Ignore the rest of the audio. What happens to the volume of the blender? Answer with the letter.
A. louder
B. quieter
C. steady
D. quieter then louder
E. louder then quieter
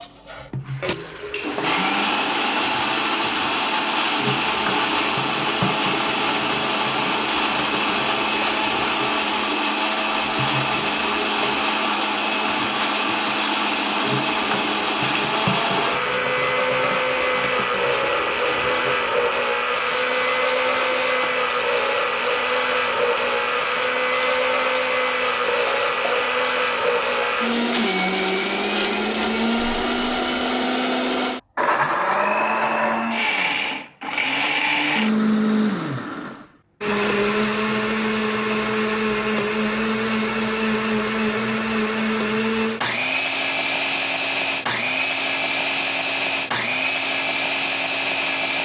C.